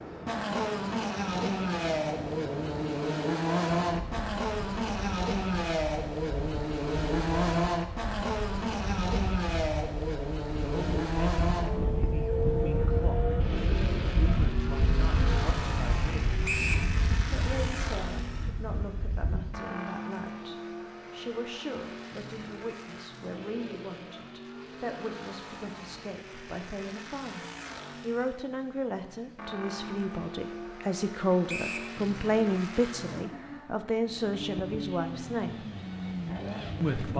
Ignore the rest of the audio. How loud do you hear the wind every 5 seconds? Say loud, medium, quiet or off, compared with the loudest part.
medium, medium, loud, loud, off, off, off, off.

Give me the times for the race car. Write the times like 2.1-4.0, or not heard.
0.0-37.1.